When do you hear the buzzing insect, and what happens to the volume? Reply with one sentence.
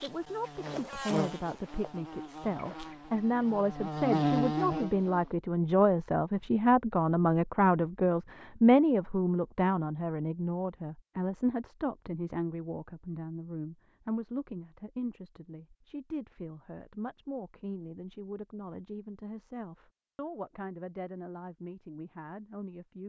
You can hear the buzzing insect from 0.0 to 5.3 s, getting quieter then louder.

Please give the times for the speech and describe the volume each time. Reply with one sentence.
The speech can be heard from 0.0 to 23.0 s, getting louder then quieter.